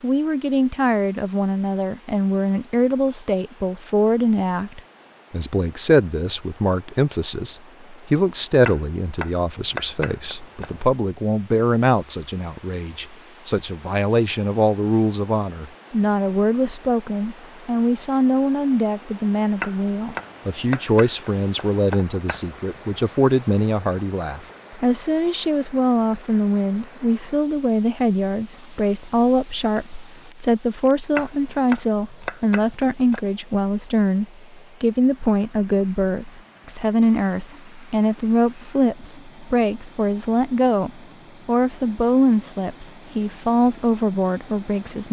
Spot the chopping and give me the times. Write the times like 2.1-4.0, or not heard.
8.6-10.7, 19.6-22.4, 31.1-33.2.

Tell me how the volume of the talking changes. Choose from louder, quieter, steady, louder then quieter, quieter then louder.
steady.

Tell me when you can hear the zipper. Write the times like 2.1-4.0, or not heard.
not heard.